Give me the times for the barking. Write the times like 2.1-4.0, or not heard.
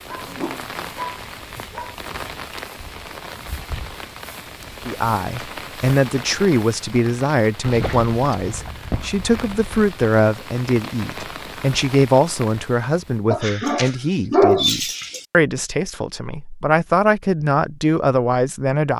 0.1-1.9, 7.6-9.2, 13.3-15.2.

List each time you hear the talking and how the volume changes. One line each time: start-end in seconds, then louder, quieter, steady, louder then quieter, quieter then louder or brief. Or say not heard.
4.8-18.9 steady.